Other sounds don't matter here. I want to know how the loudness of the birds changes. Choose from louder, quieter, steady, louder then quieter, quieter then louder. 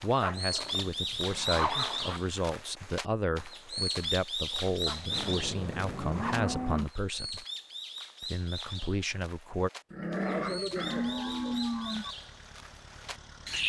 quieter.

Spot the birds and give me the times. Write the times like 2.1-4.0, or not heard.
0.0-13.6.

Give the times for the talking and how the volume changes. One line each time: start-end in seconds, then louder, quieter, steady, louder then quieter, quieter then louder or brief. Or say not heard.
0.0-7.5 steady
8.2-9.7 brief.